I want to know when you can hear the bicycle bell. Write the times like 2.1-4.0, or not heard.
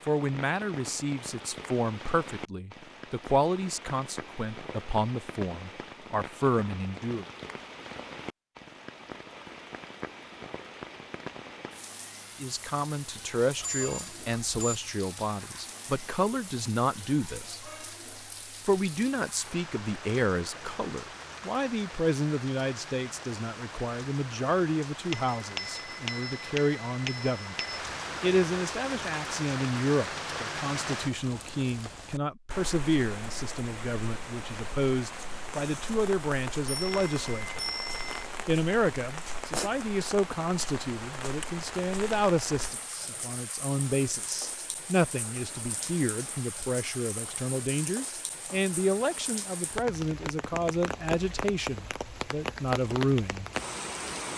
13.6-14.8, 25.1-27.8, 36.6-38.2.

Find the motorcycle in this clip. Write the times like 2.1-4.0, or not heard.
not heard.